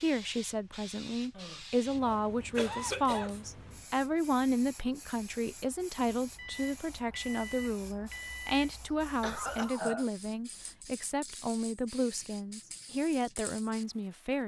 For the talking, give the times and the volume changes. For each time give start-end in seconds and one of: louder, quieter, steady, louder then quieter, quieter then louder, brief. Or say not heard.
0.0-14.4 steady.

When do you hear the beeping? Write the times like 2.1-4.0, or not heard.
6.3-8.6.